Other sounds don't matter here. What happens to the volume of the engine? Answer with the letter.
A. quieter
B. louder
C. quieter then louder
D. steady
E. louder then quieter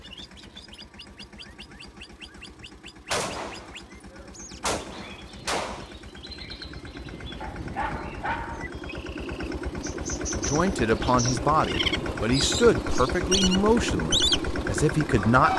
B.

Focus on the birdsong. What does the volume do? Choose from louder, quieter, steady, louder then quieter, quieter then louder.
louder.